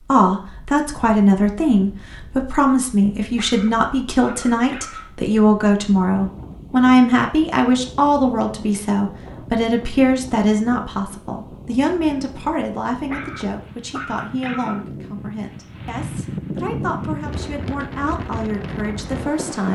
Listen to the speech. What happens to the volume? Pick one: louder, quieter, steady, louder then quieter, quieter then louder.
quieter.